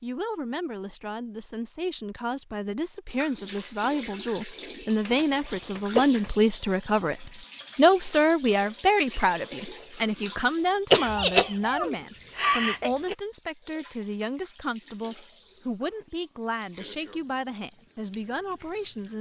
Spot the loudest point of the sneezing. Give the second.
11 s.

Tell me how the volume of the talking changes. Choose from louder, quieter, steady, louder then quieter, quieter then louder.
louder then quieter.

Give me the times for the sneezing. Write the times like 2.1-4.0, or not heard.
5.0-6.3, 10.9-13.2.